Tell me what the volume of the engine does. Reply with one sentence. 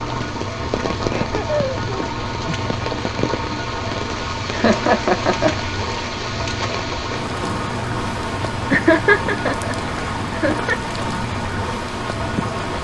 The volume of the engine stays about the same.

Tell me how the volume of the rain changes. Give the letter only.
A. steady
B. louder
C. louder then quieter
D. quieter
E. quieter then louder
A.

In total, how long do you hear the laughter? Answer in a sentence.
You can hear the laughter for 4 seconds altogether.